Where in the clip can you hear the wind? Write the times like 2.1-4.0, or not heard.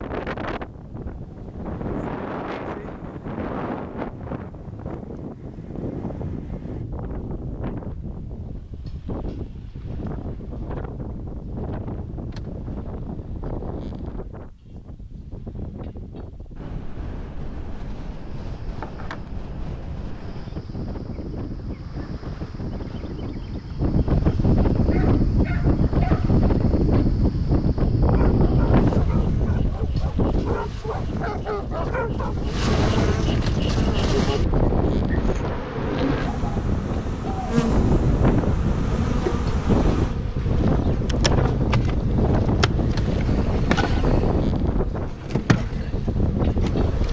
0.0-47.0.